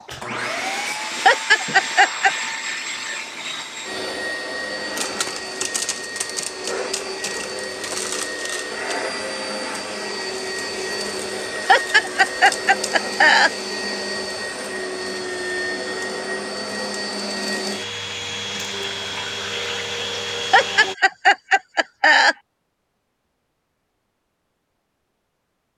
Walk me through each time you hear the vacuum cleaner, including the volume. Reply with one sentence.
You can hear the vacuum cleaner from 0.0 to 20.9 s, at a steady volume.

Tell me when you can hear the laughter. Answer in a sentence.
The laughter can be heard from 1.2 to 2.3 s, from 11.7 to 13.5 s and from 20.5 to 22.4 s.